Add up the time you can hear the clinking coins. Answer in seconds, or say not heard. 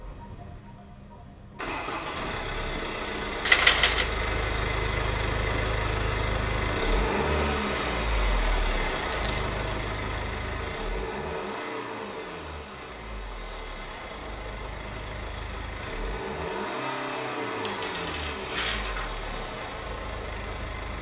3 s.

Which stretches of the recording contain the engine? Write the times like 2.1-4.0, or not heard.
0.0-20.9.